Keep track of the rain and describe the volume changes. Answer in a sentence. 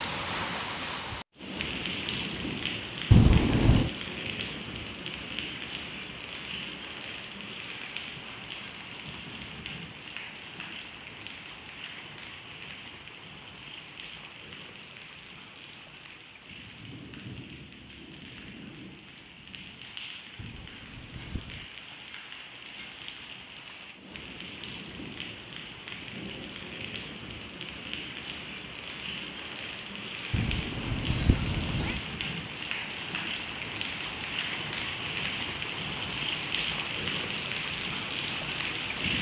The loudness of the rain goes down, then up.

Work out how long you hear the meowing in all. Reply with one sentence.
You can hear the meowing for 4 seconds altogether.